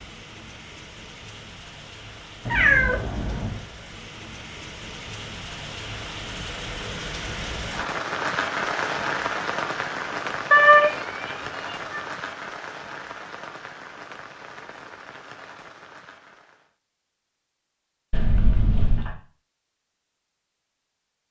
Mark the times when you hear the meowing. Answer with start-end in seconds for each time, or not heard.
2.5-3.6, 10.5-12.0, 18.1-19.1.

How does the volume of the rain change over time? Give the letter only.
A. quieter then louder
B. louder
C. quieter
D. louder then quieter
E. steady
D.